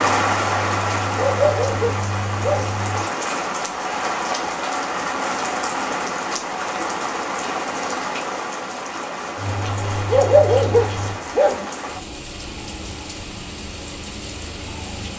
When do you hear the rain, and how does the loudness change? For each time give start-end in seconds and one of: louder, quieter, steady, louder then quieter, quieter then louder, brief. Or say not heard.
0.0-15.1 quieter.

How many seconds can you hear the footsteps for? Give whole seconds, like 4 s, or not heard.
not heard.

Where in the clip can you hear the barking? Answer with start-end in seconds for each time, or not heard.
1.1-2.8, 10.1-11.7.